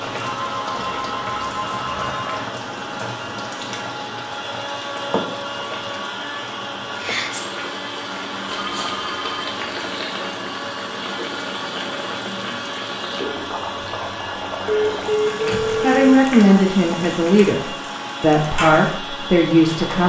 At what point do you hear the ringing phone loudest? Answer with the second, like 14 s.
15 s.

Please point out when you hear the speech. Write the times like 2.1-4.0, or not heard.
15.4-20.0.